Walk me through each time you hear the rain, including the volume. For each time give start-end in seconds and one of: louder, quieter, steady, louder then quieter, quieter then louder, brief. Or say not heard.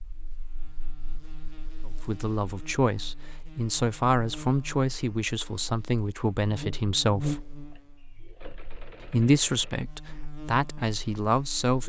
not heard.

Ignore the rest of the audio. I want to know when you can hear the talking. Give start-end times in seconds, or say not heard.
1.9-7.5, 9.0-11.8.